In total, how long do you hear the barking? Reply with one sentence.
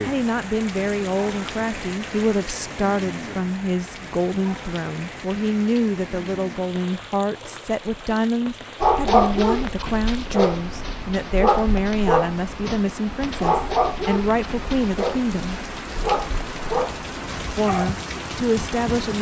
You can hear the barking for 9 seconds altogether.